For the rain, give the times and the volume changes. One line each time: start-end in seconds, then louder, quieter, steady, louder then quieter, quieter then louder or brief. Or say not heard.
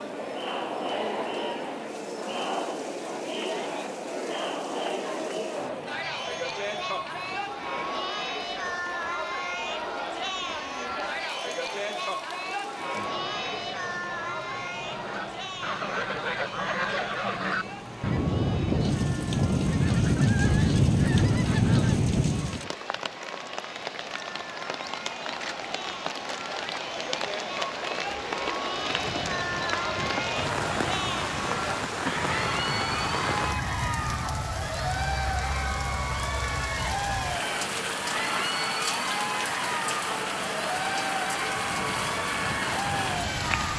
0.0-43.7 louder.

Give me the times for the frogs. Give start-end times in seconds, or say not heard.
not heard.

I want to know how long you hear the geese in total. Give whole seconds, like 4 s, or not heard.
16 s.